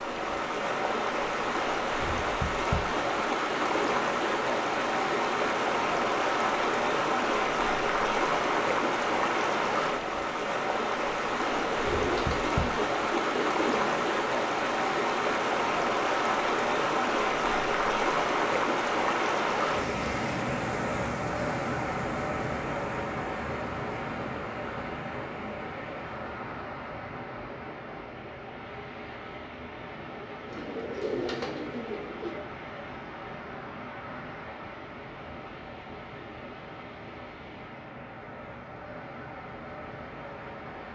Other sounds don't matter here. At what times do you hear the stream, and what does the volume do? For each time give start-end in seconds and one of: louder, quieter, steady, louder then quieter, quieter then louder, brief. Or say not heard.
0.0-40.9 quieter.